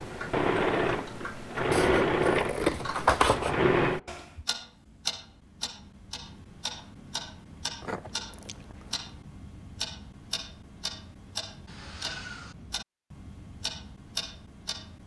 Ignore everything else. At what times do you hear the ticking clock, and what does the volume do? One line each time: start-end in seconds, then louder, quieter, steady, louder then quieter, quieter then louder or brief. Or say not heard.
0.0-15.0 steady.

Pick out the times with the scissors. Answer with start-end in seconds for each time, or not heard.
1.7-3.6, 7.8-8.9.